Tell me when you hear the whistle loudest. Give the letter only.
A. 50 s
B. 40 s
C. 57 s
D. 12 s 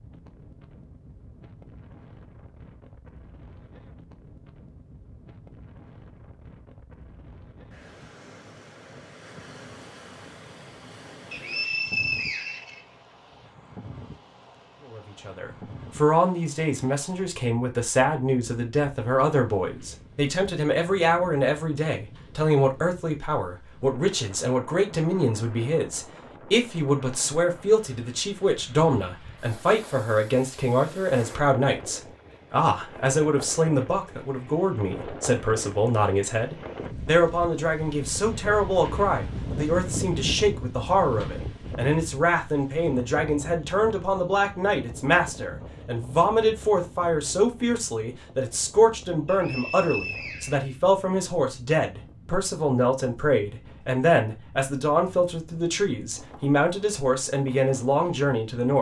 D.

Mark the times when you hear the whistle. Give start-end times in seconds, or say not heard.
11.3-12.8, 49.2-50.8.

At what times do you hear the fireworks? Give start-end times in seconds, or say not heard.
not heard.